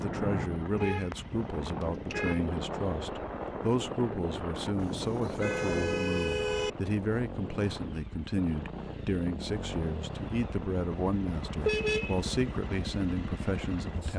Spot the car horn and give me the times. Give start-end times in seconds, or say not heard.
0.8-2.5, 4.8-6.7, 11.6-12.2.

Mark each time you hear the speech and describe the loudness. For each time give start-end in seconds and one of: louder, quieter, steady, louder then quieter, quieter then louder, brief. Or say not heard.
0.0-14.1 steady.